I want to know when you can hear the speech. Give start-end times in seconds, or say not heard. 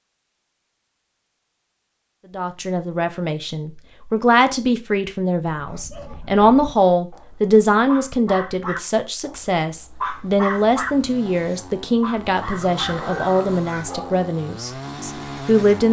2.3-15.8.